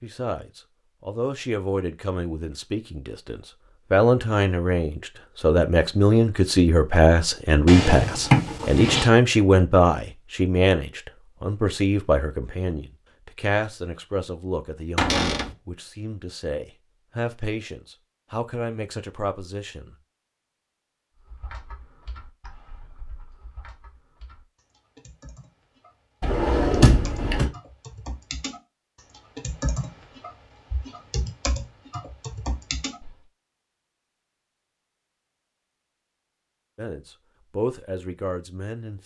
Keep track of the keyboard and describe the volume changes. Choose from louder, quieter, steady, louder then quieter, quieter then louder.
quieter then louder.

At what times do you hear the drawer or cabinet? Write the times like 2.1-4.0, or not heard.
7.7-9.1, 14.9-15.6, 26.2-27.5.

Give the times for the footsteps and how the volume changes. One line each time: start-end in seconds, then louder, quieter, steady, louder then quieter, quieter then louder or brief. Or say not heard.
not heard.